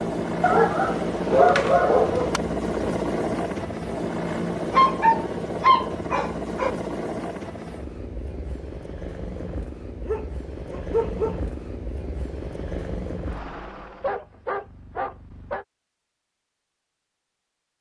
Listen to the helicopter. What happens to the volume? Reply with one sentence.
The loudness of the helicopter goes down.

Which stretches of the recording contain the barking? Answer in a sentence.
The barking can be heard from 0.4 to 2.4 s, from 4.7 to 6.7 s, from 10.1 to 11.4 s and from 14.0 to 15.7 s.